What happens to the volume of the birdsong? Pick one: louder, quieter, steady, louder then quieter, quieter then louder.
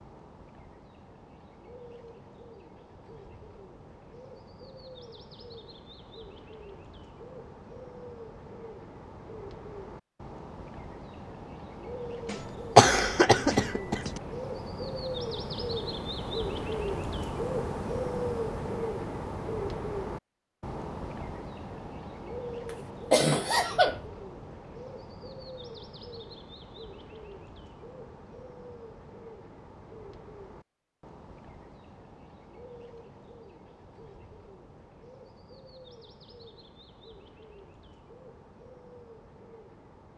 louder then quieter.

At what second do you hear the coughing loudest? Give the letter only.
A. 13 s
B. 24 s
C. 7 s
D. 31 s
A.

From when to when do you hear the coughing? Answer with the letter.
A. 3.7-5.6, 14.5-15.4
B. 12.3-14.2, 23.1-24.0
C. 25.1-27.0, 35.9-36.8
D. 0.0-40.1
B.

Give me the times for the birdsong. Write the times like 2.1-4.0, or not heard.
0.0-40.1.